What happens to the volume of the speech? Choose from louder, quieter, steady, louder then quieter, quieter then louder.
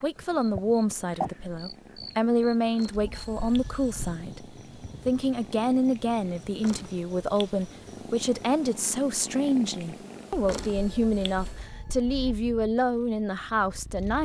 steady.